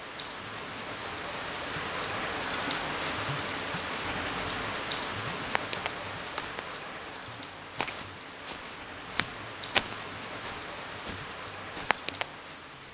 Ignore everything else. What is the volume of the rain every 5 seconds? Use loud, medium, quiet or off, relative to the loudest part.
loud, medium, medium.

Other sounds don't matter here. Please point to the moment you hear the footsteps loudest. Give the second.
10 s.